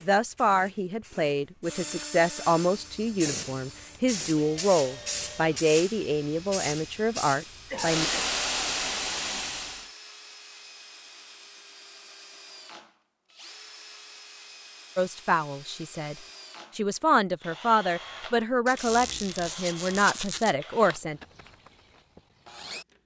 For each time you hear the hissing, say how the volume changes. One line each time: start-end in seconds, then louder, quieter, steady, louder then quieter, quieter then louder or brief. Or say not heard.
0.0-9.9 louder.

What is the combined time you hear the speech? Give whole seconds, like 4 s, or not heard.
14 s.